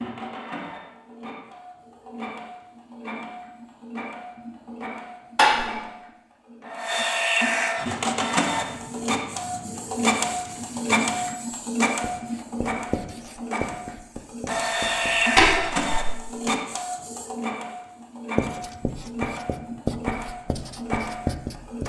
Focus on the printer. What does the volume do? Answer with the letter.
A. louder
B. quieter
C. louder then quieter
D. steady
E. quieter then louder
C.